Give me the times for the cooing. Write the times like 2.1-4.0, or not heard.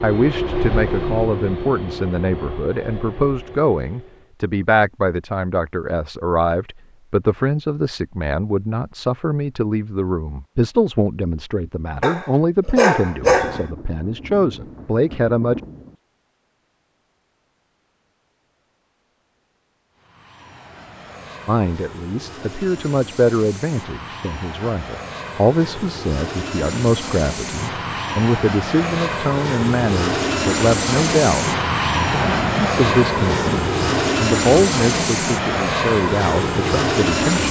not heard.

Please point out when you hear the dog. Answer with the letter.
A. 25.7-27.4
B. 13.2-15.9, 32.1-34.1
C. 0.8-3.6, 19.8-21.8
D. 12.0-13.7
D.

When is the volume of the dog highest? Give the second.
13 s.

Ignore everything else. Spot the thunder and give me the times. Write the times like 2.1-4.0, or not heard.
13.2-15.9, 32.1-34.1.